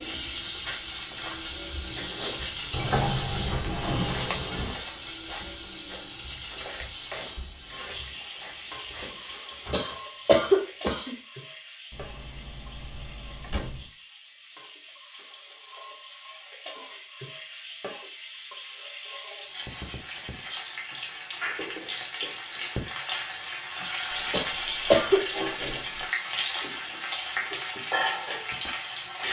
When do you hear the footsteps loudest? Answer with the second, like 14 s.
2 s.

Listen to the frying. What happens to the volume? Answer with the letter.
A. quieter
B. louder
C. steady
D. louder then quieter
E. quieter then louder
E.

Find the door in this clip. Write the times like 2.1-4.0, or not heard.
2.7-4.8, 11.9-13.9, 24.1-26.1.